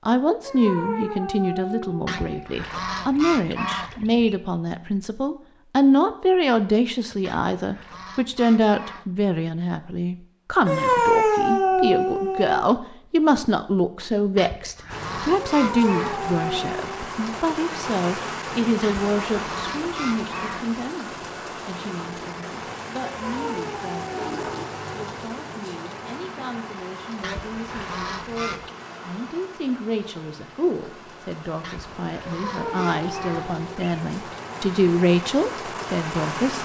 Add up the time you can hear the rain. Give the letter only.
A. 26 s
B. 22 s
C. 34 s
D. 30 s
B.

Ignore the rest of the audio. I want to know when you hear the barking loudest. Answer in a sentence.
The volume of the barking peaks at 11 seconds.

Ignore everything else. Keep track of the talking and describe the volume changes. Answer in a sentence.
The volume of the talking goes down, then up.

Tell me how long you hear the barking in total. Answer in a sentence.
You can hear the barking for 9 seconds altogether.